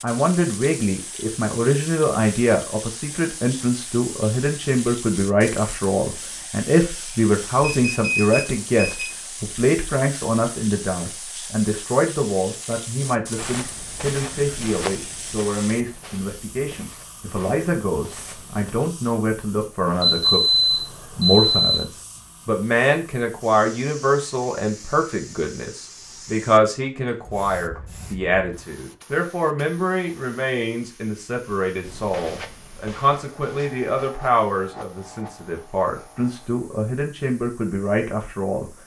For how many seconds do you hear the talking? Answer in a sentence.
You can hear the talking for 39 seconds altogether.